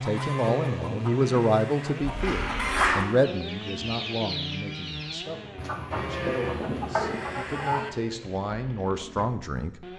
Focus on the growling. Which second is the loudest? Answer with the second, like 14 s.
3 s.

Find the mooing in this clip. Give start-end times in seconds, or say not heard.
0.1-2.1, 5.9-7.9.